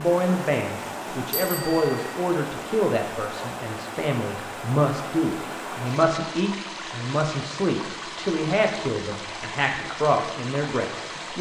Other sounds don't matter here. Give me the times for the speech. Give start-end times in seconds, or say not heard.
0.0-11.3.